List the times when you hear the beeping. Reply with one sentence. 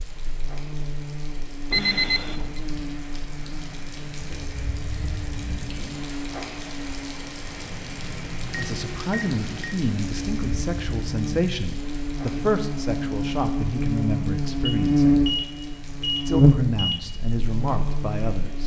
The beeping can be heard from 1.7 to 2.6 s, from 8.4 to 9.8 s and from 14.7 to 17.1 s.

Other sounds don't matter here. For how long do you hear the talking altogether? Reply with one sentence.
The talking can be heard for 9 seconds in total.